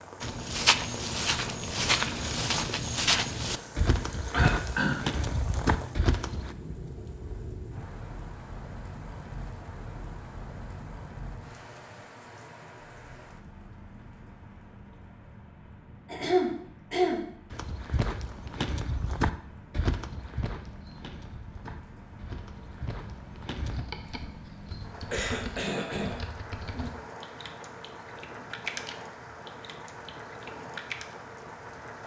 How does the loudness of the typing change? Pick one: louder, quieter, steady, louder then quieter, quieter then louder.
louder then quieter.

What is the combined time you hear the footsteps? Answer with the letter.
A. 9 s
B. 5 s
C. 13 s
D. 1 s
C.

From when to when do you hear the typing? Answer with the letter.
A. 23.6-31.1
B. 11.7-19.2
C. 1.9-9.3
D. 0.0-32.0
A.